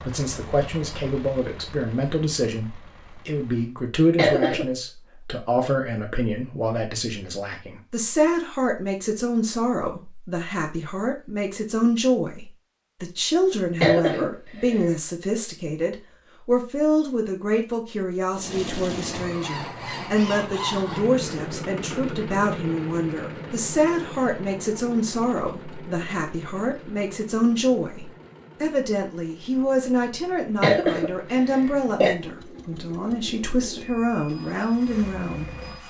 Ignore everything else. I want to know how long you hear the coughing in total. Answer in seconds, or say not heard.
3 s.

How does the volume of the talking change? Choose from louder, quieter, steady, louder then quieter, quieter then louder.
steady.